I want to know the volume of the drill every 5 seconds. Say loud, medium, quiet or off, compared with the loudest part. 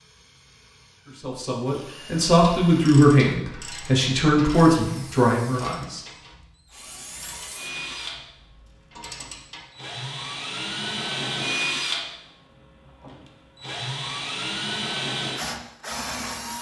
quiet, medium, loud, loud.